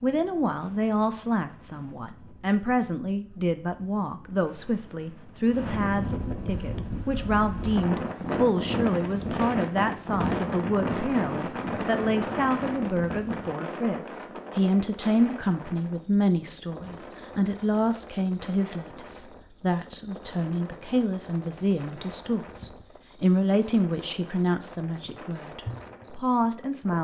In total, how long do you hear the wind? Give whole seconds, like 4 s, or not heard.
27 s.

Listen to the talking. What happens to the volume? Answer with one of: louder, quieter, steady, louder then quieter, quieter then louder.
steady.